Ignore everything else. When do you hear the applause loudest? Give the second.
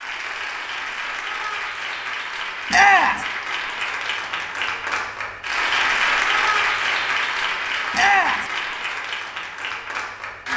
6 s.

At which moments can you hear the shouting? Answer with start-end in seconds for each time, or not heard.
2.7-3.2, 7.9-8.4.